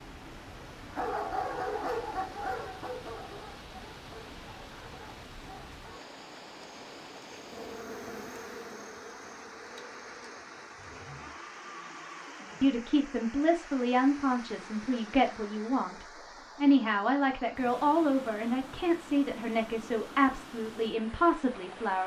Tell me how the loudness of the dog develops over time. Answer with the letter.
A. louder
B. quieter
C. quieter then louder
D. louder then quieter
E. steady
B.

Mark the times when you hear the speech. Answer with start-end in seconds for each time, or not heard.
12.6-22.0.